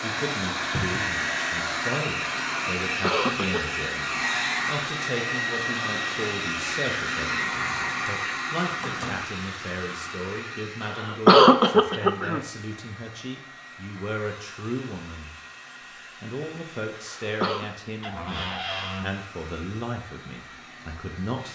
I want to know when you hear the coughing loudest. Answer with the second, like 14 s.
11 s.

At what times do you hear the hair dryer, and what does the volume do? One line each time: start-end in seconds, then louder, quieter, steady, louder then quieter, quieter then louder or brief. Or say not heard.
0.0-21.4 quieter.